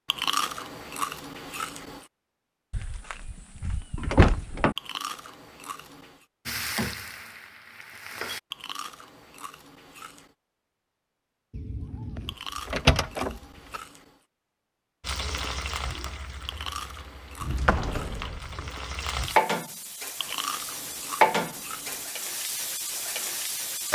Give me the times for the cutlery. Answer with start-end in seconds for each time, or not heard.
not heard.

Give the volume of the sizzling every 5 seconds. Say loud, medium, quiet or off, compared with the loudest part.
off, medium, off, loud, loud.